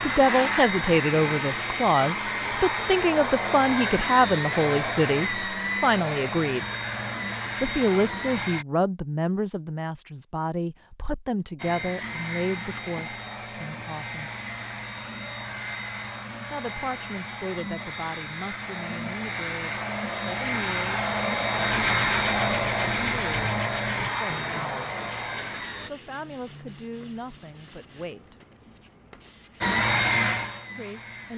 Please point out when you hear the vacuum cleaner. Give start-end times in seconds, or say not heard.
0.0-8.7, 11.6-25.9, 29.6-31.3.